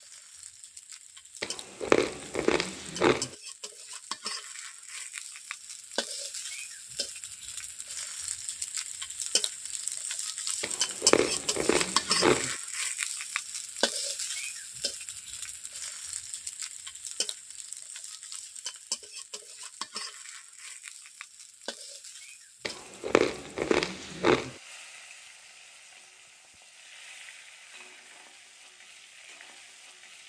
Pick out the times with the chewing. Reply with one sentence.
You can hear the chewing from 1.4 to 3.3 s, from 10.6 to 12.6 s and from 22.6 to 24.6 s.